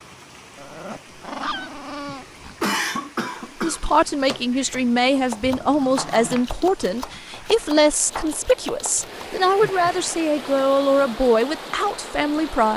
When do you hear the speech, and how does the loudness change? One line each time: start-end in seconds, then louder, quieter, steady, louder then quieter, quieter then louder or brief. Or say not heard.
3.6-12.7 steady.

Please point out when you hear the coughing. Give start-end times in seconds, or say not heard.
2.6-3.9.